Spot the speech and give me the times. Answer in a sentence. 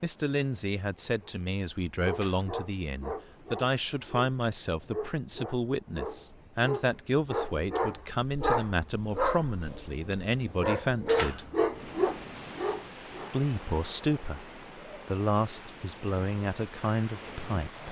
You can hear the speech from 0.0 to 11.4 s and from 13.3 to 17.8 s.